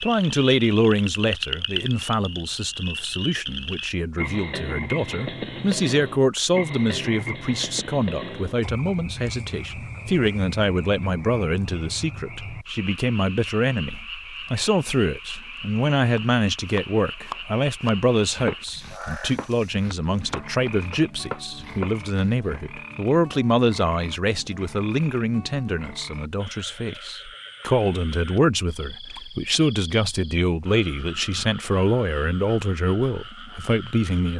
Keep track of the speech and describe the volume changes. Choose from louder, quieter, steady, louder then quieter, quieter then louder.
steady.